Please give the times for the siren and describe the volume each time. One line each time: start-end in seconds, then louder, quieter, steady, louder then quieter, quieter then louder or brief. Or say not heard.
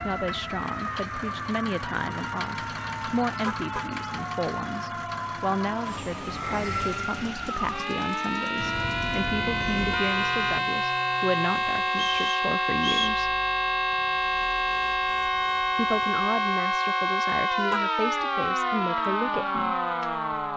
0.0-20.5 louder.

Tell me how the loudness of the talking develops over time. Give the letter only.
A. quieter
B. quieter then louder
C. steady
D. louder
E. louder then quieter
C.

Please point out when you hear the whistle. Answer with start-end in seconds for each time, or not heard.
11.9-13.2.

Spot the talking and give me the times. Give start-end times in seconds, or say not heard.
0.0-13.3, 15.8-19.8.